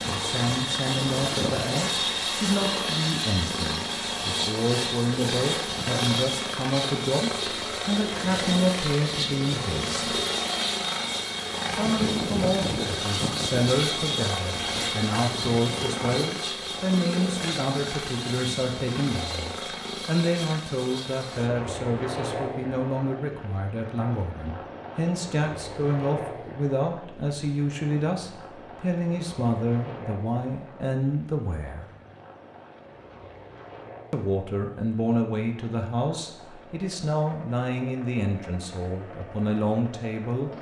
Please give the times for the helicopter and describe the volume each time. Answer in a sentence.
The helicopter can be heard from 0.0 to 40.5 s, getting quieter.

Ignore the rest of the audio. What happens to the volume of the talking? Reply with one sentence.
The volume of the talking stays about the same.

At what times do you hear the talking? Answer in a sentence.
The talking can be heard from 0.1 to 10.1 s, from 11.7 to 31.9 s and from 34.1 to 40.5 s.